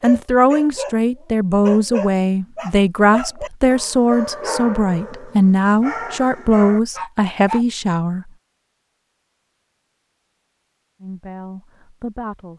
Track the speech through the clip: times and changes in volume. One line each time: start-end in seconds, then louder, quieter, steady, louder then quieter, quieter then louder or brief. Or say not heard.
0.0-8.2 steady
11.0-12.5 brief.